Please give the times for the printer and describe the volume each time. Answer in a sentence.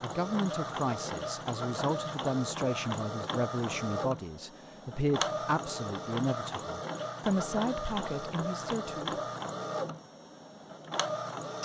You can hear the printer from 0.0 to 11.5 s, at a steady volume.